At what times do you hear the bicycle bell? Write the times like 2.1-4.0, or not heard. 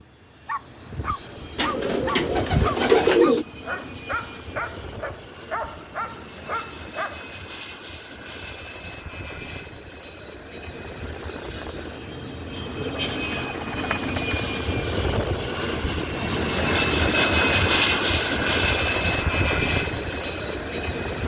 not heard.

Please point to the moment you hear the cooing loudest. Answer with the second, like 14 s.
3 s.